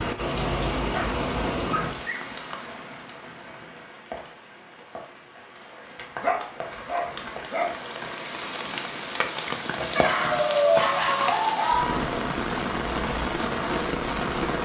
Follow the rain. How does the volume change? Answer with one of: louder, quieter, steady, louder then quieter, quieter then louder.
quieter then louder.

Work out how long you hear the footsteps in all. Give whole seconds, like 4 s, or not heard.
not heard.